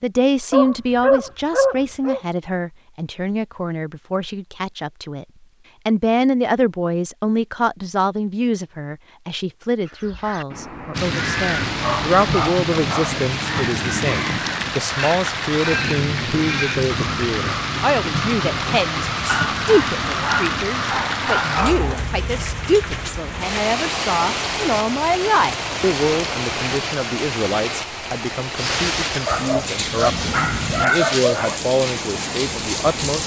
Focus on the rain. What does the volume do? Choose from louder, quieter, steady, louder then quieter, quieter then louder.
steady.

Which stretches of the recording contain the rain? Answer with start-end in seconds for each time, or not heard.
10.9-33.2.